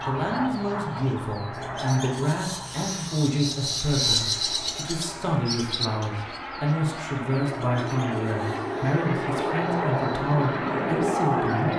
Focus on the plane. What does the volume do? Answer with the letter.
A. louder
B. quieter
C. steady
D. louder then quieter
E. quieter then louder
E.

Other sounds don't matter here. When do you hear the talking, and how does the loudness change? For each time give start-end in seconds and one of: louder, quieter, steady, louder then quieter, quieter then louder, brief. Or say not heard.
0.0-11.7 steady.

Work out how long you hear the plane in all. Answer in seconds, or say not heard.
12 s.